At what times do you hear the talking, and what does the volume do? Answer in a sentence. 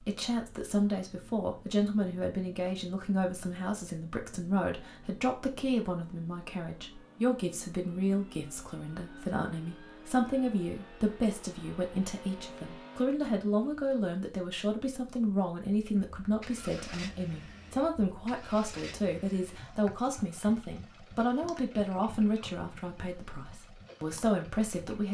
The talking can be heard from 0.0 to 25.0 s, at a steady volume.